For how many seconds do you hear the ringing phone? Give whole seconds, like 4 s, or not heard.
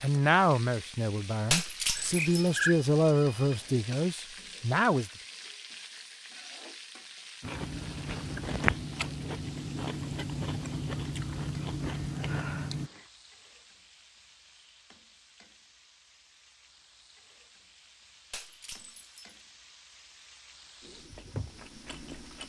3 s.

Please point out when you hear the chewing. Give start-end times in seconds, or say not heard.
7.4-12.9, 20.8-22.4.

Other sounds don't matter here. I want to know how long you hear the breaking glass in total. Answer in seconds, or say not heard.
2 s.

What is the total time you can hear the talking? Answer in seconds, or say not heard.
5 s.